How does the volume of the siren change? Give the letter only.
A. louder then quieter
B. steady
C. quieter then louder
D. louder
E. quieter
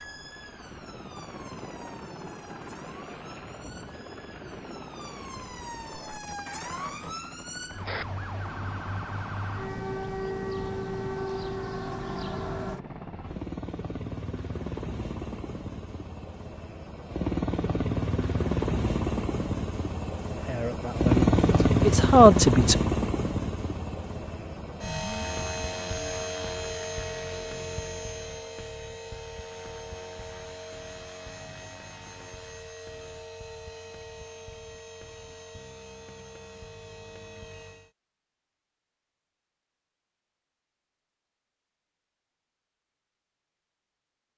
D.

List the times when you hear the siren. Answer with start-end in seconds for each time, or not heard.
0.0-12.8.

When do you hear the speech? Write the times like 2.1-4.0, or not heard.
20.4-22.8.